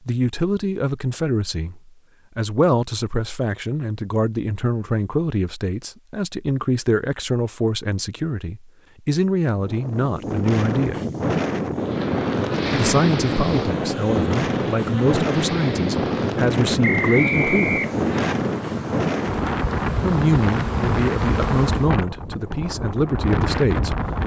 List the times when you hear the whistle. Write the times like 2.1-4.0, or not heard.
16.8-18.4.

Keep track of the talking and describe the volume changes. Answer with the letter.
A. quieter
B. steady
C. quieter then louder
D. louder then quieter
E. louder
B.